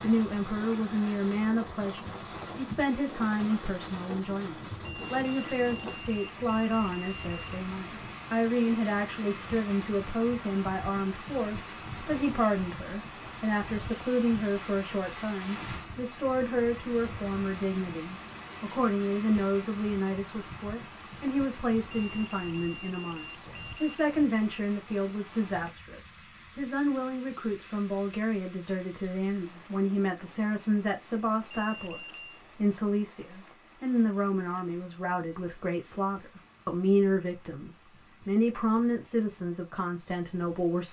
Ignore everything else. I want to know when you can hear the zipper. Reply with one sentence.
The zipper can't be heard in this clip.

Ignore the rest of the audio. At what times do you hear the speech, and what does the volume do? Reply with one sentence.
The speech can be heard from 0.0 to 40.8 s, at a steady volume.